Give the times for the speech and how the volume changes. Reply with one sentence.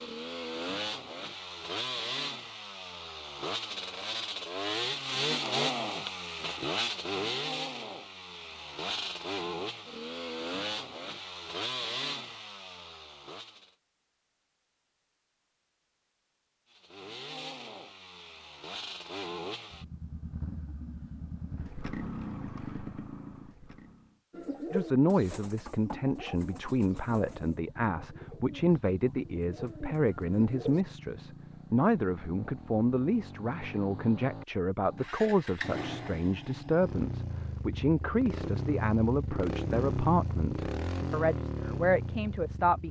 You can hear the speech from 24.7 to 42.8 s, at a steady volume.